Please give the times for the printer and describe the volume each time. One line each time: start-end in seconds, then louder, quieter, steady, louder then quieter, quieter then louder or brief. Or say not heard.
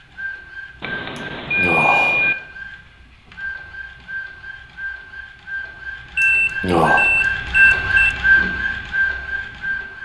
0.0-9.9 louder.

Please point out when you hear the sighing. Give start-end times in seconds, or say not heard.
1.6-2.3, 6.2-7.0.